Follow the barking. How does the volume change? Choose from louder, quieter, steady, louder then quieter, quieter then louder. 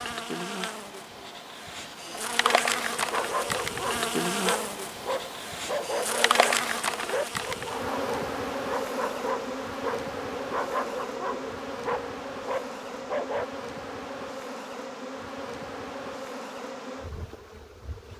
steady.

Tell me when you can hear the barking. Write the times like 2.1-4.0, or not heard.
2.3-13.4.